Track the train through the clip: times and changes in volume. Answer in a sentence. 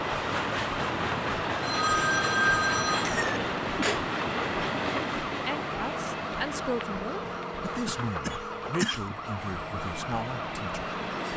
The train can be heard from 0.0 to 11.3 s, getting quieter.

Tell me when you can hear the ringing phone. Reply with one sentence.
You can hear the ringing phone from 1.6 to 3.1 s and from 6.8 to 8.7 s.